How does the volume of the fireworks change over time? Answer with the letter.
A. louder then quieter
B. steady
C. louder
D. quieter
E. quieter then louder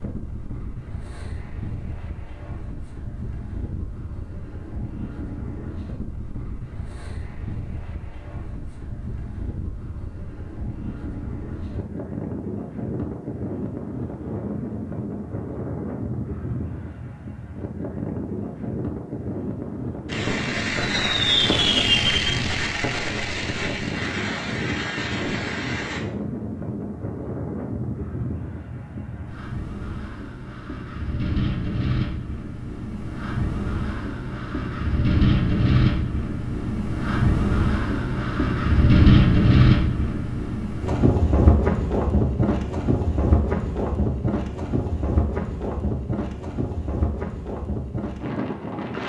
D.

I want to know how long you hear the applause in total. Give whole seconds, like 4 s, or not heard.
not heard.